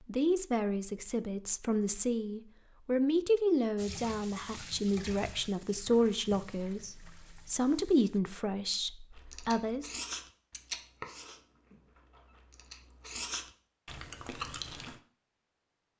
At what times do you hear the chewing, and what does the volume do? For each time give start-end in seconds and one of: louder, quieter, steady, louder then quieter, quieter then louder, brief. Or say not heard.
9.2-15.0 quieter then louder.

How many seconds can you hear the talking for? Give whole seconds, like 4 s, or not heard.
10 s.